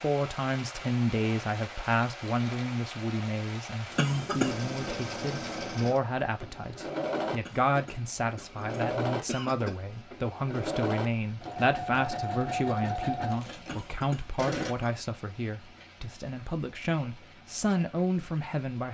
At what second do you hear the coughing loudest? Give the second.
4 s.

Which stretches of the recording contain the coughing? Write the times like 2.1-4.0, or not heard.
4.0-4.5, 7.5-9.8, 13.7-14.9.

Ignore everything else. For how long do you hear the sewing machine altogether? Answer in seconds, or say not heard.
10 s.